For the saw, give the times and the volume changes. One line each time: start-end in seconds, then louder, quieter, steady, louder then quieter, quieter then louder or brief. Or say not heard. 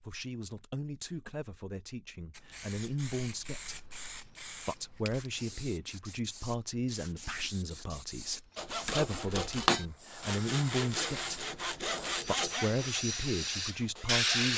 8.6-14.5 quieter.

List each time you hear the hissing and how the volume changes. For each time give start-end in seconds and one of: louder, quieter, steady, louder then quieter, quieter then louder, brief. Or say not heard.
2.3-14.5 louder.